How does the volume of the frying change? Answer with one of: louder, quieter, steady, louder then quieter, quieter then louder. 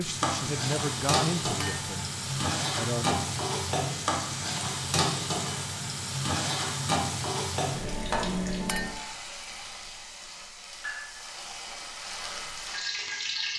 quieter.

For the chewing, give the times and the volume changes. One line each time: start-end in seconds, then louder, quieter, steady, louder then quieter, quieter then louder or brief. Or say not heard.
not heard.